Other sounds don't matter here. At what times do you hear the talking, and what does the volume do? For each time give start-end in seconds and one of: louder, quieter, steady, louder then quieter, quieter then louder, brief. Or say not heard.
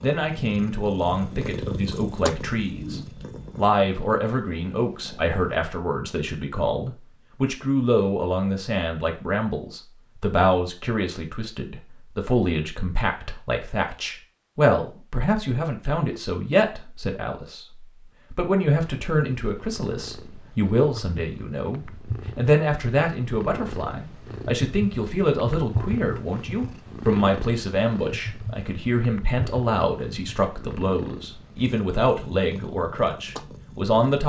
0.0-34.2 steady.